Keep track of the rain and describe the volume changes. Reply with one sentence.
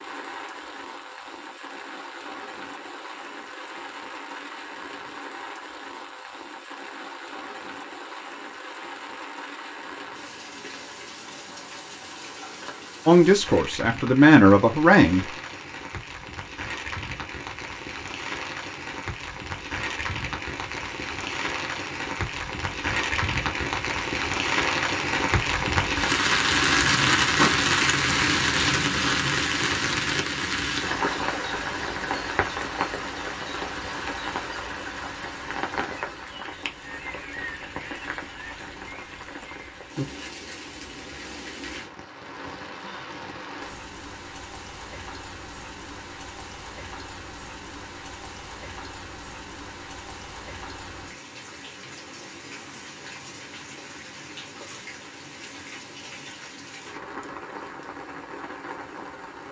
The volume of the rain goes up, then down.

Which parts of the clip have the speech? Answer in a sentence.
The speech can be heard from 13.1 to 15.2 s.